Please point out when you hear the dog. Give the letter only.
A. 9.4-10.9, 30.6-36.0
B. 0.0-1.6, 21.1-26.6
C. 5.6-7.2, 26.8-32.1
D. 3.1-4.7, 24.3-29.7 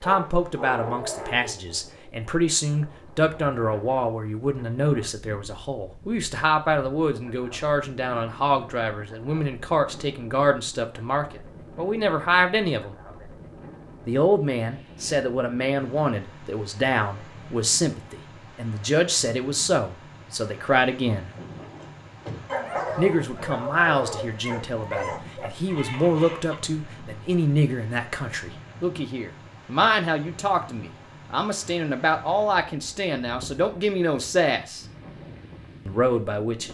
B.